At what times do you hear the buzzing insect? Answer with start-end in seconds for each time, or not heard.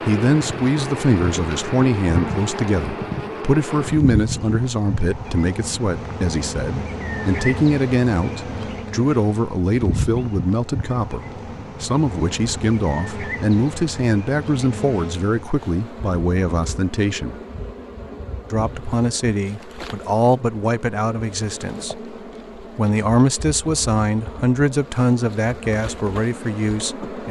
0.0-27.2.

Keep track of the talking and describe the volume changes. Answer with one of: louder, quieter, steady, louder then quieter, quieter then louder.
steady.